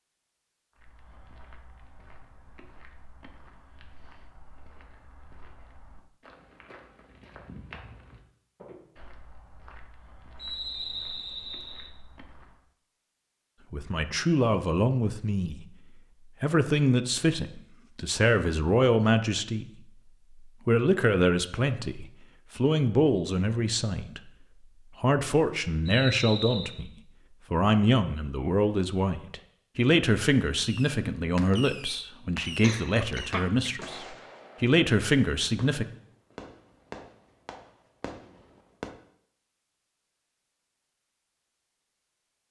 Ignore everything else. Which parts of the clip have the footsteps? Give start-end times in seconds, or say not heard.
0.8-12.7.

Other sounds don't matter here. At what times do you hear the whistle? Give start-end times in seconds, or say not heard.
10.3-11.9, 25.9-26.8.